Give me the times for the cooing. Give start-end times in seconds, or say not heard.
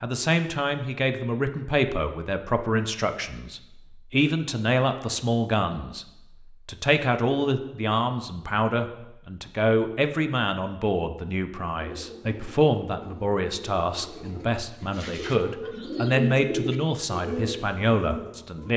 11.8-18.7.